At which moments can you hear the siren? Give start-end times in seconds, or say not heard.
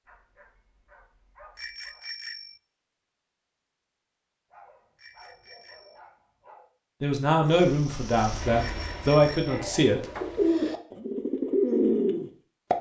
not heard.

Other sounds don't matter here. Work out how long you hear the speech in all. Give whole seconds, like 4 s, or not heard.
3 s.